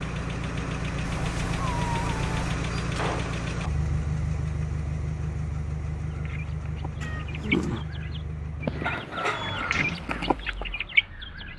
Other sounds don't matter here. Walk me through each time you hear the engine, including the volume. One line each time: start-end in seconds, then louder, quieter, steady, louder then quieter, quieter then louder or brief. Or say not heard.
0.0-11.5 quieter.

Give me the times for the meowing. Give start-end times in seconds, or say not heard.
1.1-2.5, 7.0-7.8.